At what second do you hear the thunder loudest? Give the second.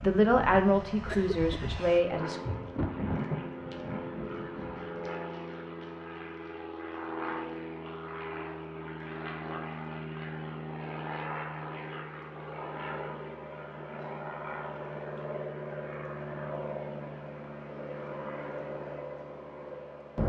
3 s.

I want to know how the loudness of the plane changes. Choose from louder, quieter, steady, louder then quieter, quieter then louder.
steady.